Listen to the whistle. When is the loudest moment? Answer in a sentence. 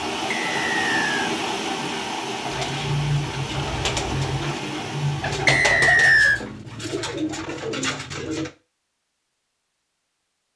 The volume of the whistle peaks at 6 seconds.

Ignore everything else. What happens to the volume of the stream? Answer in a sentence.
The loudness of the stream goes down.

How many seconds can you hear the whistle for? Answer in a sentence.
The whistle can be heard for 2 seconds in total.